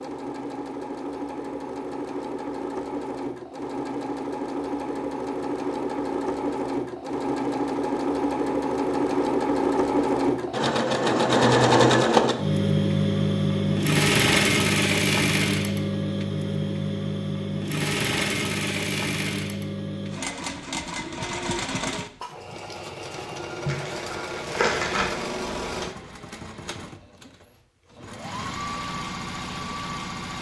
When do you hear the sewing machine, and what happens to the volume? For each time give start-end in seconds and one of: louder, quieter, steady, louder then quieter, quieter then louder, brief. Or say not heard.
0.0-30.3 louder then quieter.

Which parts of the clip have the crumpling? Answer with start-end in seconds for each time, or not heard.
23.6-25.3.